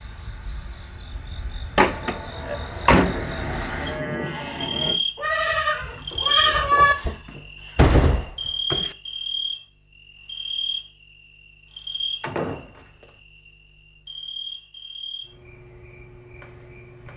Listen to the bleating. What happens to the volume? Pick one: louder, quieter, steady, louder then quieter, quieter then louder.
louder.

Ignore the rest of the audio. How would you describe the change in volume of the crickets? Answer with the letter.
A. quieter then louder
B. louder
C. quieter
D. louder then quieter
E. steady
D.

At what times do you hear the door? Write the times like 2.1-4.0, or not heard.
1.8-3.2, 7.0-8.9, 12.2-13.1.